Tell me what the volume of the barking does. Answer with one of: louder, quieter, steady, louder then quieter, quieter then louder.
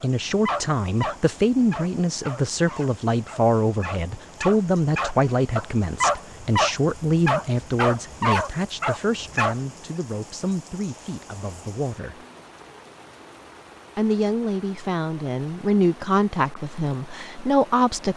quieter then louder.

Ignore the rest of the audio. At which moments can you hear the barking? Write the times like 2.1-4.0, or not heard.
0.0-9.6.